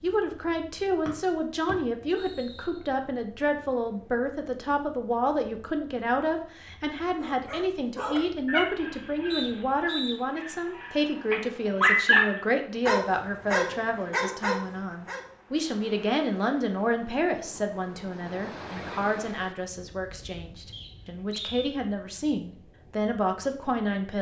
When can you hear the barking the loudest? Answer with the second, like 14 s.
12 s.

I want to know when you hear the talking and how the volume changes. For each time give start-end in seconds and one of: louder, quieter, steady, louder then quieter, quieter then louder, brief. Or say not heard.
0.0-24.1 steady.